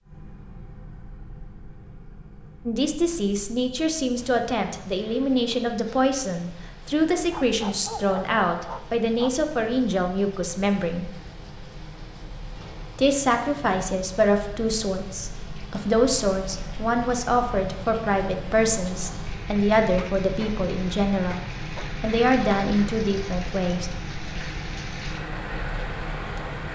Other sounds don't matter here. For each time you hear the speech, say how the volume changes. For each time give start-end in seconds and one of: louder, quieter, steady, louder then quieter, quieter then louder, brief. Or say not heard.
2.6-11.1 steady
12.9-23.9 steady.